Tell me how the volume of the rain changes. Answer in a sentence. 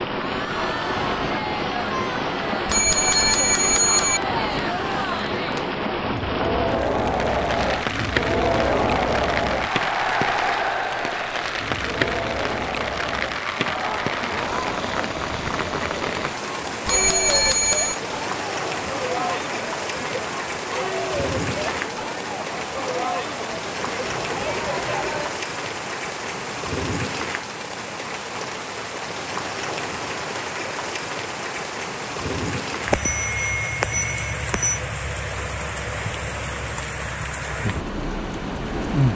The volume of the rain stays about the same.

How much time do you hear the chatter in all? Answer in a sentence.
The chatter can be heard for 25 seconds in total.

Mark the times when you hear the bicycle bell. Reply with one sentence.
The bicycle bell can be heard from 2.6 to 4.2 s, from 16.9 to 18.0 s and from 32.9 to 34.8 s.